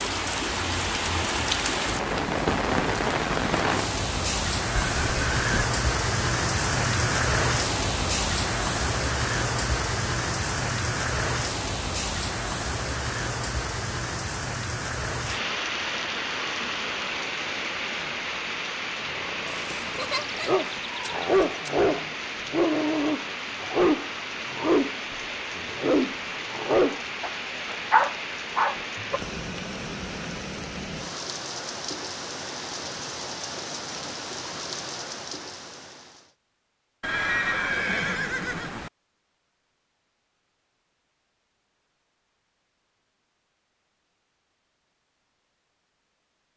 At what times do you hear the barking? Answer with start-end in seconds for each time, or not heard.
19.1-29.2.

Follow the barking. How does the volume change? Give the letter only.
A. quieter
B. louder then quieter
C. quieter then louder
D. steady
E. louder
E.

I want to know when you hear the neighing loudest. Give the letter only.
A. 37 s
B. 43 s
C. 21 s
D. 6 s
A.